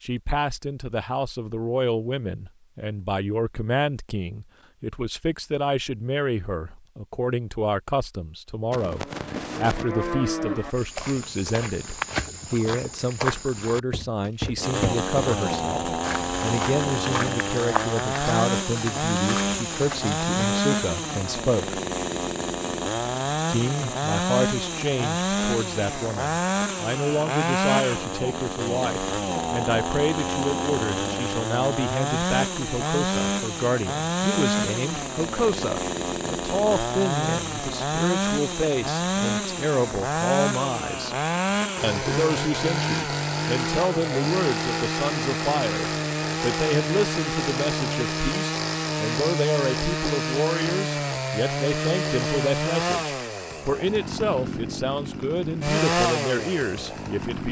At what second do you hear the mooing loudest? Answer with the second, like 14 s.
10 s.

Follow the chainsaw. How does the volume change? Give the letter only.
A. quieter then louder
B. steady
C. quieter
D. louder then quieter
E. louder
B.